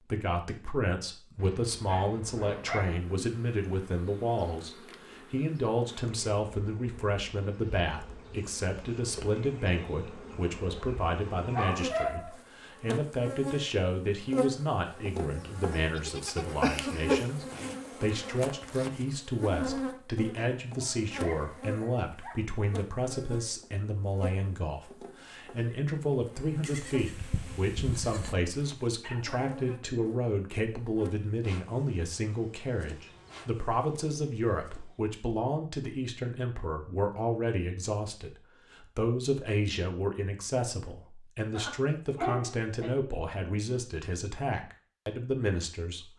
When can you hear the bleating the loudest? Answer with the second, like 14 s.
17 s.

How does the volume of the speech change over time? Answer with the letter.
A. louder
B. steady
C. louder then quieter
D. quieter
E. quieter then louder
B.